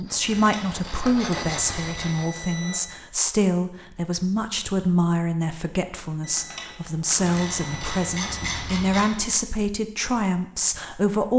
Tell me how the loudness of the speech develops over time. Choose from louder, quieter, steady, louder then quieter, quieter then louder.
steady.